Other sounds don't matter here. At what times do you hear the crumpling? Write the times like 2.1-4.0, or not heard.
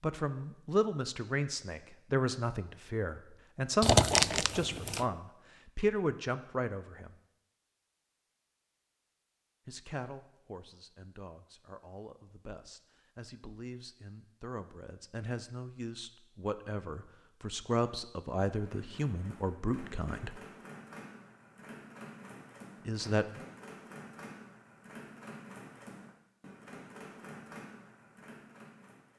3.8-5.0.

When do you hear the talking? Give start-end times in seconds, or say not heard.
0.0-7.2, 9.7-20.4, 22.9-23.4.